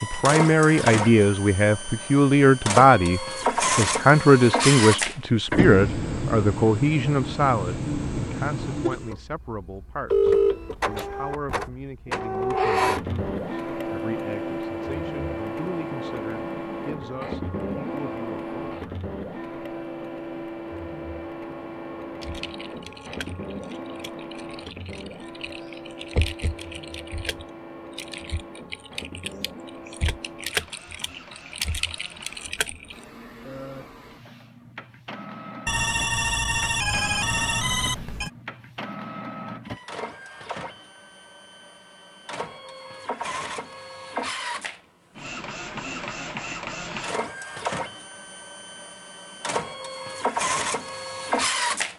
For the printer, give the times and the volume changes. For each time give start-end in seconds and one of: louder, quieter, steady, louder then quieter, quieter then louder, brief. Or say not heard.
0.0-51.9 quieter then louder.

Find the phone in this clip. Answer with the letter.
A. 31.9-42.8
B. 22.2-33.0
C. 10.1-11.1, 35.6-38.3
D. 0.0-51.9
C.